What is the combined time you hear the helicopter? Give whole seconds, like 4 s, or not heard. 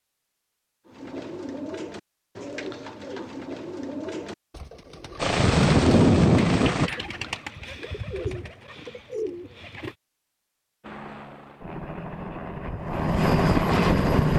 5 s.